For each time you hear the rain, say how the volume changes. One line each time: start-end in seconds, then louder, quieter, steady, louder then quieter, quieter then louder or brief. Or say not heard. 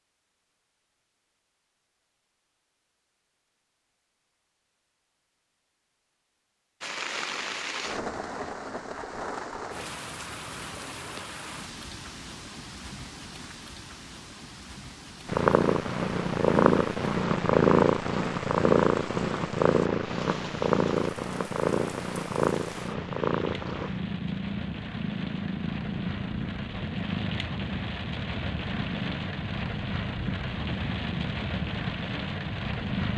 6.8-33.1 quieter then louder.